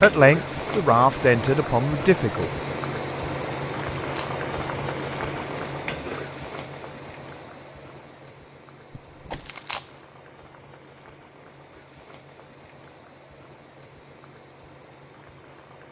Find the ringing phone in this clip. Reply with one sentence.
You can't hear the ringing phone here.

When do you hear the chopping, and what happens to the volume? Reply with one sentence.
The chopping can't be heard in this clip.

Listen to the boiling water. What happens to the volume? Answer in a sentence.
The loudness of the boiling water goes down.